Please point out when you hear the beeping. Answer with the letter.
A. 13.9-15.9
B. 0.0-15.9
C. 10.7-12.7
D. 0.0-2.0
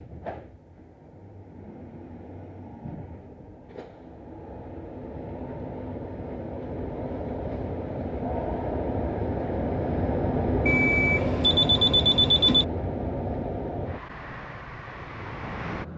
C.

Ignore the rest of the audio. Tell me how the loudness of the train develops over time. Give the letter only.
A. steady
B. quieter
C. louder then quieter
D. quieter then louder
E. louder
C.